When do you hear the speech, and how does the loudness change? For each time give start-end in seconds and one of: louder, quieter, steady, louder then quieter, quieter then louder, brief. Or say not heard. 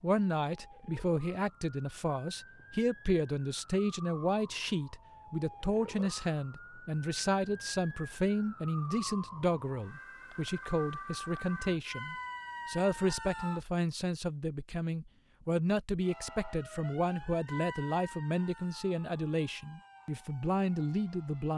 0.0-21.5 steady.